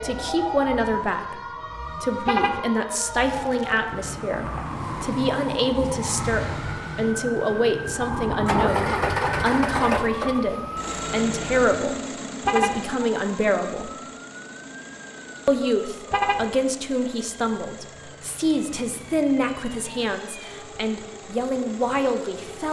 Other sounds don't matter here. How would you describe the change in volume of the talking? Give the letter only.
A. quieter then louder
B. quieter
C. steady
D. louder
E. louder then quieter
C.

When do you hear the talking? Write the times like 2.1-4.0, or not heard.
0.0-13.9, 15.4-22.6.